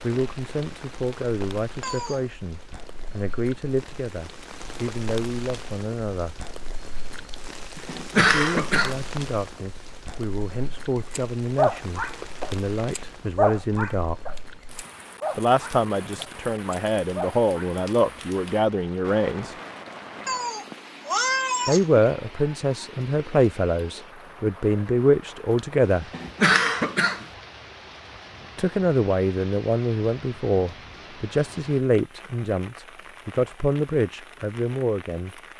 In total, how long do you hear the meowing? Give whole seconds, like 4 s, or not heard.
2 s.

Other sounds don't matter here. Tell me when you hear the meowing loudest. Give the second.
21 s.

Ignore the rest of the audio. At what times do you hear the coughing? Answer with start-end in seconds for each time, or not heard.
7.3-9.0, 25.6-27.2.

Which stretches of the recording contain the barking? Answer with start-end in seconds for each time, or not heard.
11.2-17.7.